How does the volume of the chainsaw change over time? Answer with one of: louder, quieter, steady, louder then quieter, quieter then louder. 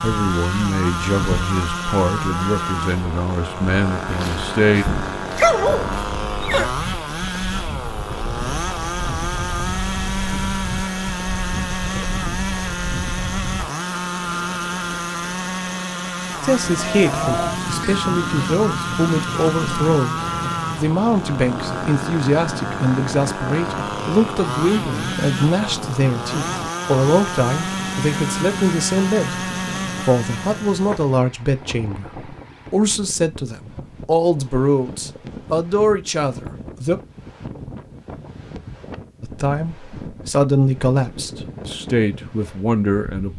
steady.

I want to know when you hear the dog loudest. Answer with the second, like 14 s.
6 s.